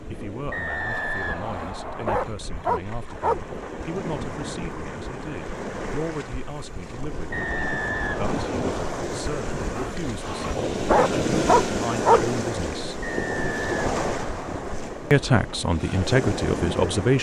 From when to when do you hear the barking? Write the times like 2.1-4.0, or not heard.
0.9-3.4, 9.8-12.2.